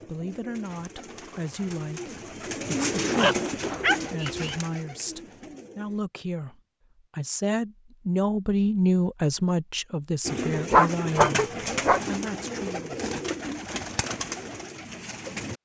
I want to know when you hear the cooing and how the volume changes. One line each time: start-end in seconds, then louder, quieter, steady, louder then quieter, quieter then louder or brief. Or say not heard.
0.0-6.0 louder then quieter
10.2-15.6 quieter.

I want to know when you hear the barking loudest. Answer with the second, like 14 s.
11 s.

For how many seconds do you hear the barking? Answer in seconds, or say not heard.
3 s.